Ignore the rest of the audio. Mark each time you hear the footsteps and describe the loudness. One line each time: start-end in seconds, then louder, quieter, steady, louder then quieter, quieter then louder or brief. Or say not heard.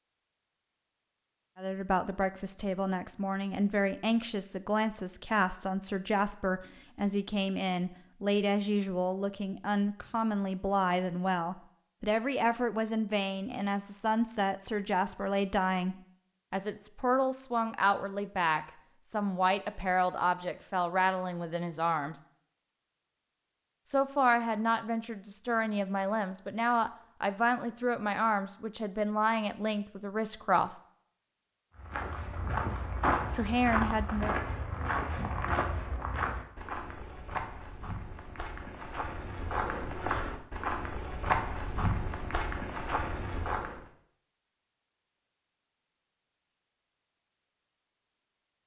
31.8-43.9 quieter then louder.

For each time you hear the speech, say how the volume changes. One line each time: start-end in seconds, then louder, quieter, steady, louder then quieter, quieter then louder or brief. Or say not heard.
1.6-22.2 steady
23.9-30.8 steady
33.3-34.4 brief.